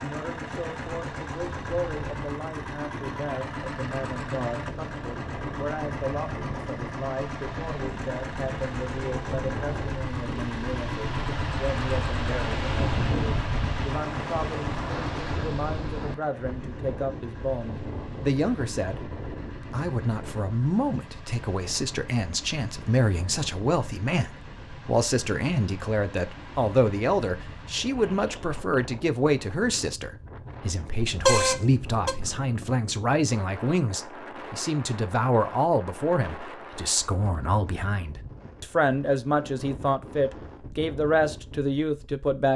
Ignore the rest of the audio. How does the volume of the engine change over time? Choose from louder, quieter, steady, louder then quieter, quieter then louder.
quieter.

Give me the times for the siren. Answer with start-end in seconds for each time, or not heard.
not heard.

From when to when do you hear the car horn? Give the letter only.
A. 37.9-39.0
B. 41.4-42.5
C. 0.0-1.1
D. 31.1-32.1
D.